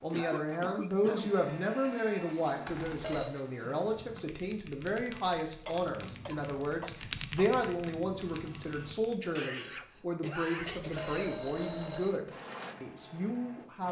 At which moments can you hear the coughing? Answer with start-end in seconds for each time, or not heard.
0.1-1.4, 5.7-7.5, 9.3-11.3.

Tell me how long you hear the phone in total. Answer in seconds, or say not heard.
2 s.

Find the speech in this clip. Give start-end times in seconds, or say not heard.
0.0-13.8.